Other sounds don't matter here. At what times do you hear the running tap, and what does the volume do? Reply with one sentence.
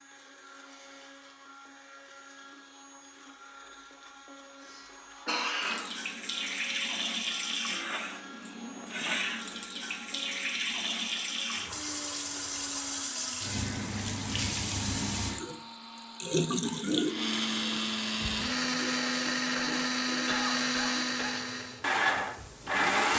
The running tap can be heard from 5.6 to 22.9 s, getting quieter.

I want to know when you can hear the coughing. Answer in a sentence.
You can hear the coughing from 4.6 to 5.8 s and from 19.6 to 21.4 s.